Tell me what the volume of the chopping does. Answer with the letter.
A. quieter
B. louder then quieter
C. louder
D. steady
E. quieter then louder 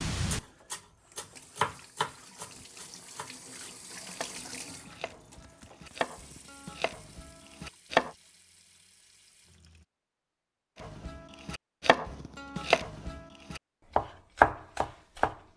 E.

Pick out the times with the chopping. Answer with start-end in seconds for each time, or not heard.
0.0-8.1, 10.8-15.3.